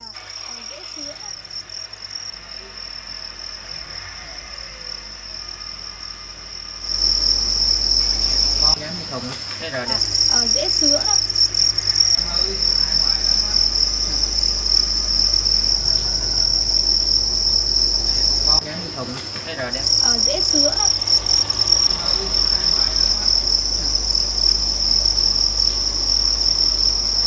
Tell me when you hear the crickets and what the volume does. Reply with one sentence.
The crickets can be heard from 0.0 to 27.2 s, getting louder.